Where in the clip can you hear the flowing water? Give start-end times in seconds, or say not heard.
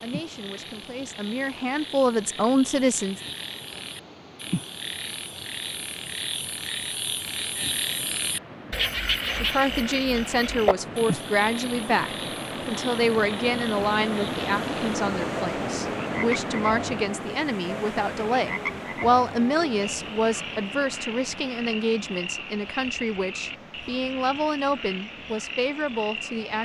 0.0-26.5.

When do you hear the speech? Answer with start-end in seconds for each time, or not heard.
0.0-3.1, 9.4-26.5.